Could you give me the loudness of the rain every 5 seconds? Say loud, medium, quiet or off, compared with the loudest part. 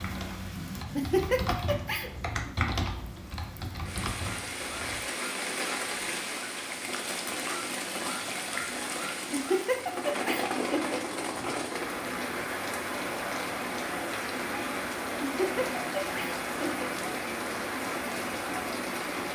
medium, loud, loud, loud.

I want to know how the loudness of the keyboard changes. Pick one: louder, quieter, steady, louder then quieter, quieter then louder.
louder then quieter.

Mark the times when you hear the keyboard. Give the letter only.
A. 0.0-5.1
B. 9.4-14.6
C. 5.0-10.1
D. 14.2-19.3
A.